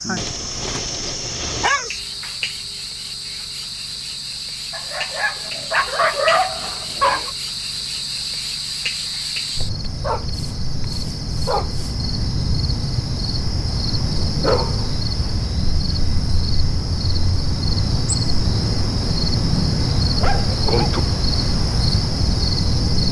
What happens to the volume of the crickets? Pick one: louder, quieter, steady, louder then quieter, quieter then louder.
louder.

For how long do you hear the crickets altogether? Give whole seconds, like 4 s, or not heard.
23 s.